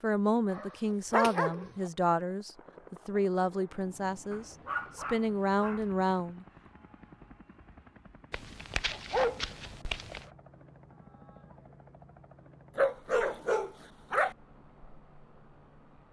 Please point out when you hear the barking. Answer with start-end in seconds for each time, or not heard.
0.5-1.9, 4.3-6.0, 8.3-10.2, 12.8-14.3.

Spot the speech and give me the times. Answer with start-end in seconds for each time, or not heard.
0.0-6.5.